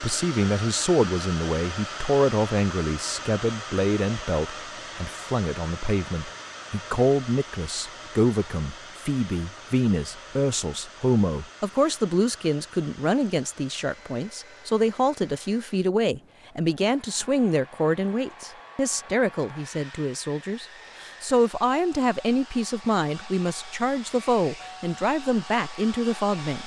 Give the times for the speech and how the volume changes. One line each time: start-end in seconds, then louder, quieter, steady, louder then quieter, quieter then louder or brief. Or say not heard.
0.0-26.6 steady.